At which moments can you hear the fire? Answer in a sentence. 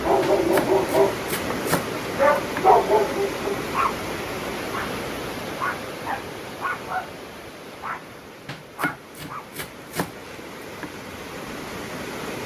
The fire can't be heard in this clip.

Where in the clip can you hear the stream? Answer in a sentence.
The stream can be heard from 0.0 to 12.4 s.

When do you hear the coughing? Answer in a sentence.
The coughing can't be heard in this clip.